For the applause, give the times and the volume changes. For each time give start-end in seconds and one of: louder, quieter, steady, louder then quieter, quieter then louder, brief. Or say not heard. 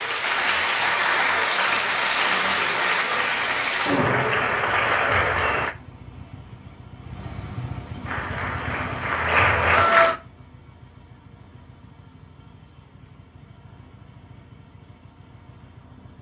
0.0-5.8 steady
8.1-10.2 brief.